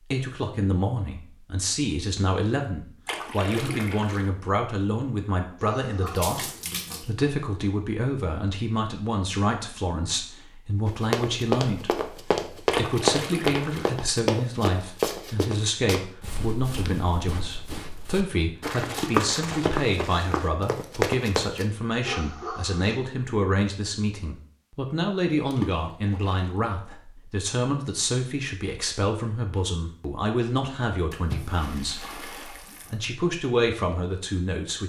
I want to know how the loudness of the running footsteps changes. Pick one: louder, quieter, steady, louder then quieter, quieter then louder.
quieter then louder.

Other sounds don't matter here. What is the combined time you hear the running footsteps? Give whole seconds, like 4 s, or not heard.
11 s.